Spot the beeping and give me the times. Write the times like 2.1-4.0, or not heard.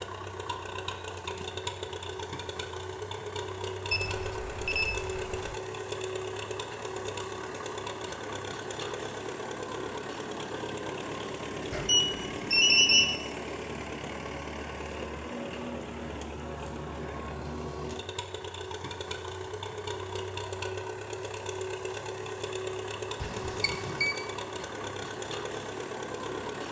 3.9-5.5, 11.7-13.2, 23.2-24.1.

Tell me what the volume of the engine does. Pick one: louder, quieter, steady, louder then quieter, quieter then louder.
steady.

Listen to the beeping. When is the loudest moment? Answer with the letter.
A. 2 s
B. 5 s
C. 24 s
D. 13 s
D.